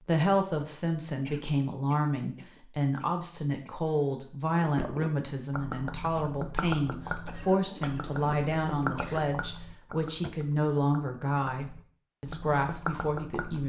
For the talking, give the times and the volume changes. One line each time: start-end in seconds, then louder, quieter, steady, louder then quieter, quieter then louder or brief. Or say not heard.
0.0-13.6 steady.